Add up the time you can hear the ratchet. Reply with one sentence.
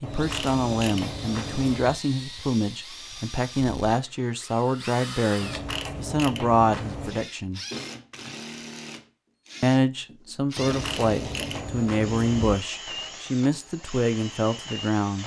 You can hear the ratchet for 6 seconds altogether.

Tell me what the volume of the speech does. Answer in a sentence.
The volume of the speech stays about the same.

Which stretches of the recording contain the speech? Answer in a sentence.
The speech can be heard from 0.0 to 7.6 s and from 9.6 to 15.2 s.